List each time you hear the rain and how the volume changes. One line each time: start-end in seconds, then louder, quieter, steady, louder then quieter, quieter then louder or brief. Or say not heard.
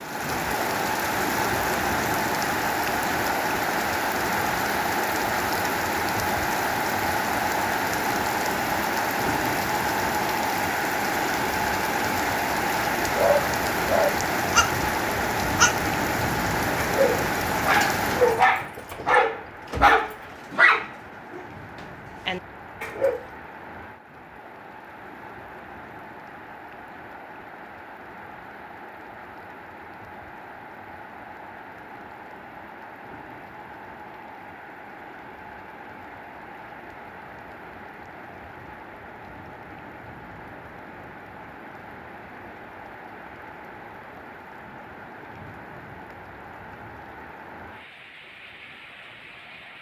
0.0-49.7 quieter.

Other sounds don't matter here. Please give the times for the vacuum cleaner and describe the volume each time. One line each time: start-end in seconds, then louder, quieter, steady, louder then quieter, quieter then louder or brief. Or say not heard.
not heard.